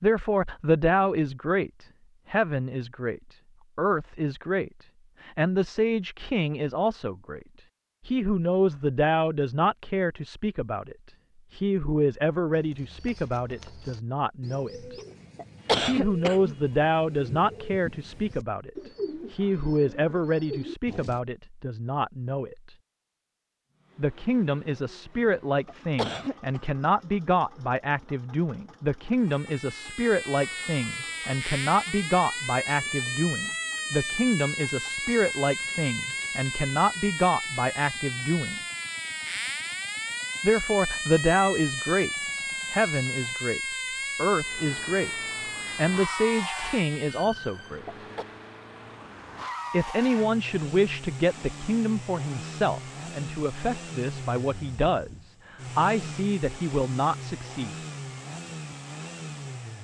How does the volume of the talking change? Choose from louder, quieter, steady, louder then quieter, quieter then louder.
steady.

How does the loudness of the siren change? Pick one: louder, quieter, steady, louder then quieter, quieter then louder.
steady.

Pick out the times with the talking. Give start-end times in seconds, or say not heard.
0.0-7.4, 8.1-14.9, 15.8-22.8, 23.9-38.6, 40.4-47.9, 49.7-57.8.